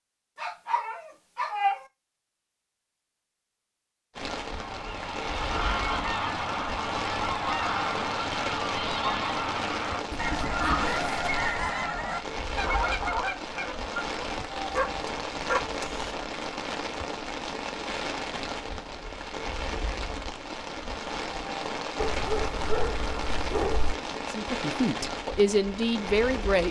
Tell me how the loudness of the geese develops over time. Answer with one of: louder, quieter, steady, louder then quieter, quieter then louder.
steady.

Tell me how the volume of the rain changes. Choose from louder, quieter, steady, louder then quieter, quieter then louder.
steady.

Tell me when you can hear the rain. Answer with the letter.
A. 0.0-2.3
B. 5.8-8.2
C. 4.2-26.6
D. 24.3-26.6
C.